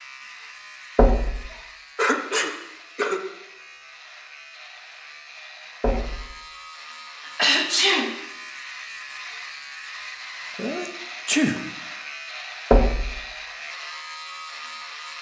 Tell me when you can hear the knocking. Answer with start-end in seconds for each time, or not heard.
0.9-1.4, 5.8-6.2, 12.7-13.2.